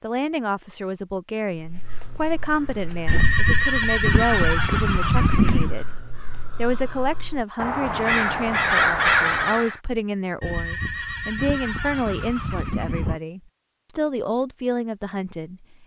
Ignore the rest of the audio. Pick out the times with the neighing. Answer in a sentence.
You can hear the neighing from 3.0 to 5.8 s and from 10.4 to 13.2 s.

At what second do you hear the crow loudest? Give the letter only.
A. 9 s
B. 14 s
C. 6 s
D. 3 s
A.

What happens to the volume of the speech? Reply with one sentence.
The volume of the speech stays about the same.